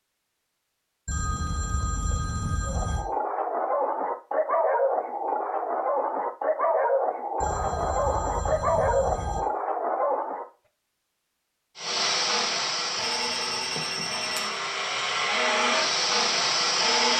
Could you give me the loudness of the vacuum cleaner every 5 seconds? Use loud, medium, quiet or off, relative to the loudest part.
off, off, medium, loud.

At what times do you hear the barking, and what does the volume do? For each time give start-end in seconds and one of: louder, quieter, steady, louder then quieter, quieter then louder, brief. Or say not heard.
2.6-10.4 steady.